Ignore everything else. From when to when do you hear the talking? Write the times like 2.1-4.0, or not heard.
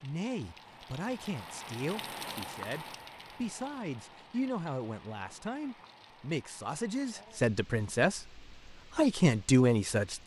0.0-8.2, 8.9-10.2.